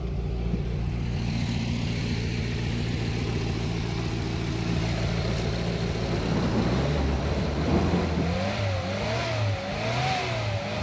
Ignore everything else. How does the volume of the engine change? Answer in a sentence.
The loudness of the engine stays about the same.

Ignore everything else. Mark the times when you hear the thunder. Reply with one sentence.
The thunder can be heard from 5.2 to 8.3 s.